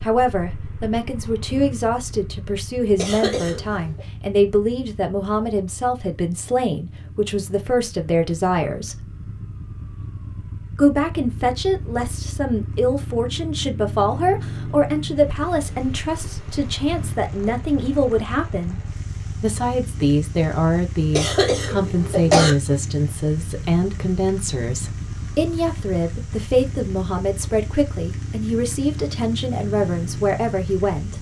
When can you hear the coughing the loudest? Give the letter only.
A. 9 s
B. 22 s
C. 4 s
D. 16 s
B.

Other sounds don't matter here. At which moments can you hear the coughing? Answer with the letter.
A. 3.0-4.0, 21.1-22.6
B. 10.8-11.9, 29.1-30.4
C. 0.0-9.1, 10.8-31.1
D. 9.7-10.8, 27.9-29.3
A.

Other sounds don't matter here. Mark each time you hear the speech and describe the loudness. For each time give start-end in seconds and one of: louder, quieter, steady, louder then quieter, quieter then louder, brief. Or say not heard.
0.0-9.1 steady
10.8-31.1 steady.